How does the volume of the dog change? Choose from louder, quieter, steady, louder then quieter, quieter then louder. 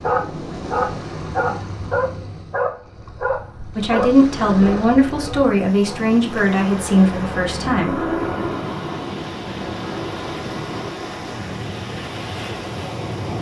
quieter.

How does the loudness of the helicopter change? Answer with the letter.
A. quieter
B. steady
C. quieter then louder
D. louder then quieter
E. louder
A.